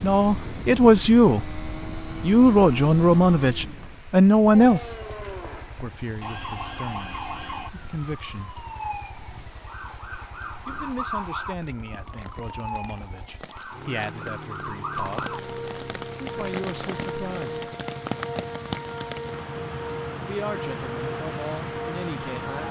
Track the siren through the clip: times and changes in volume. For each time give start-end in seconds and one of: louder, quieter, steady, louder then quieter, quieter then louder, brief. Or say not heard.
4.5-22.6 steady.